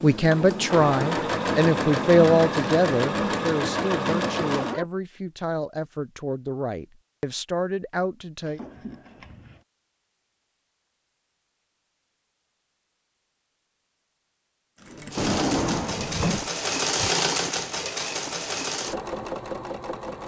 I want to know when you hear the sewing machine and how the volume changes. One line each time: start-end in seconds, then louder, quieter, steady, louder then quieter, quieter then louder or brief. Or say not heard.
0.0-4.8 steady
14.8-20.2 louder then quieter.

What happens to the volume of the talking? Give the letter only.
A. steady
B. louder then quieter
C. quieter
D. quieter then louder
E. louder
C.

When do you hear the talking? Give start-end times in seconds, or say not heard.
0.0-8.6.